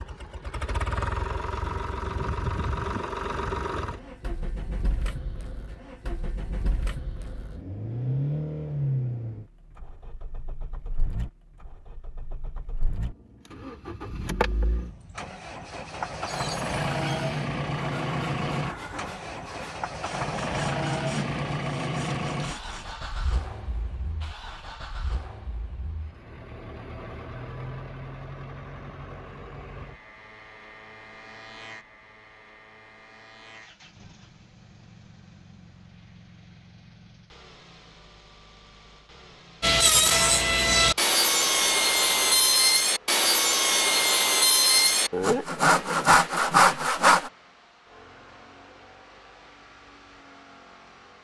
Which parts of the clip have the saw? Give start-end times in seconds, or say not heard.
16.2-22.9, 39.6-47.3.